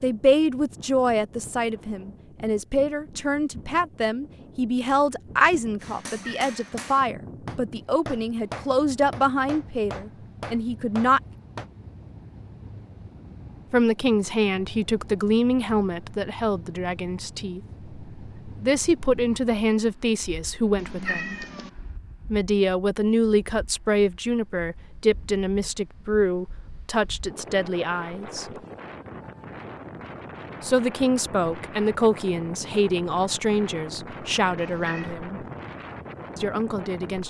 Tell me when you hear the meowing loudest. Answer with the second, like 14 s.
21 s.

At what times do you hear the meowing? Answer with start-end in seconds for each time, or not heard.
6.0-6.9, 20.8-21.7, 34.5-35.1.